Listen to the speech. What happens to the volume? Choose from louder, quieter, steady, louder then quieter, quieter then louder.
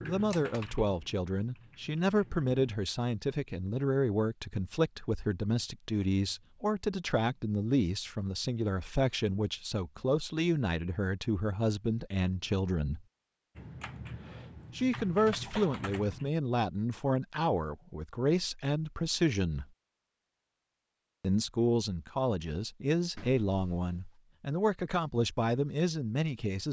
steady.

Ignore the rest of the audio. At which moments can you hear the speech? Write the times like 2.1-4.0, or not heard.
0.0-13.1, 14.8-19.6, 21.2-26.6.